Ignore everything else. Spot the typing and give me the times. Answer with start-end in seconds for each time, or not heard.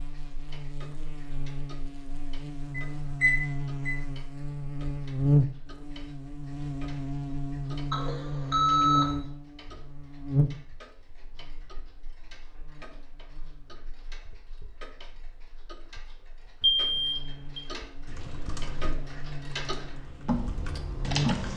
18.1-21.5.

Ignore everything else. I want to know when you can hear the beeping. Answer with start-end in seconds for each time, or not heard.
2.8-4.0, 7.9-9.1, 16.6-17.6.